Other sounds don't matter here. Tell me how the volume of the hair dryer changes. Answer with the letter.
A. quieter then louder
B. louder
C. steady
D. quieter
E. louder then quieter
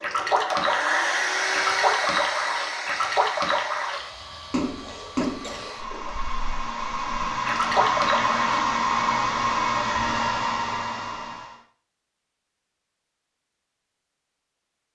A.